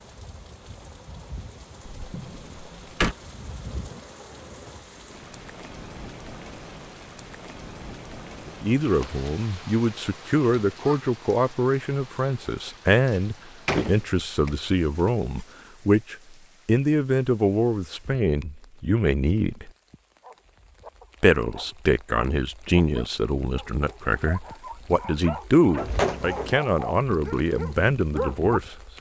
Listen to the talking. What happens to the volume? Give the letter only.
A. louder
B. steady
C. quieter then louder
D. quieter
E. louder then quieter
B.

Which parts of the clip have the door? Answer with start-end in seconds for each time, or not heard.
1.9-3.1, 13.1-15.4, 25.8-26.6.